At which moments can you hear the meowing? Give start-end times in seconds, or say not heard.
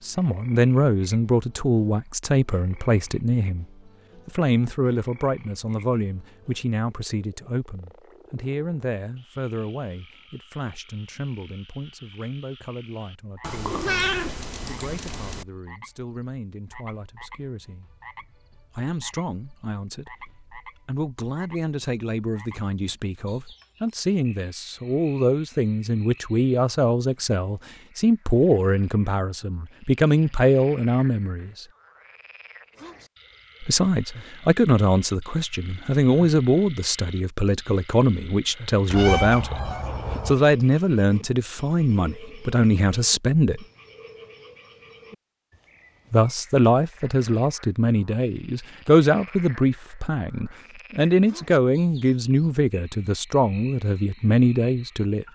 13.4-15.4, 38.9-40.4.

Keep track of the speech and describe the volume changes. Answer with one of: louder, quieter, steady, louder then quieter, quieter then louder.
quieter then louder.